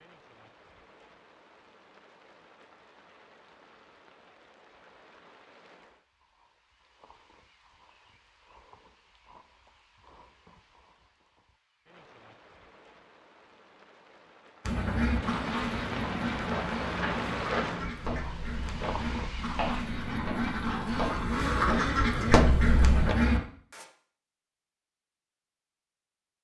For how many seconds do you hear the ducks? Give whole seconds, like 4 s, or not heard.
9 s.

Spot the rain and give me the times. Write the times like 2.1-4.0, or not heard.
0.0-19.9.